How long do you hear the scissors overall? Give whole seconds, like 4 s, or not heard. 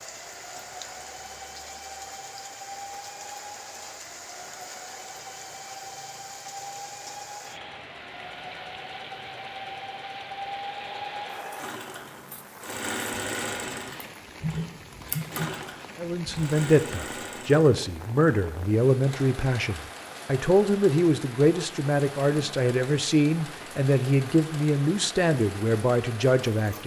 2 s.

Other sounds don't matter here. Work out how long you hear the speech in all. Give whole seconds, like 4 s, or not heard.
11 s.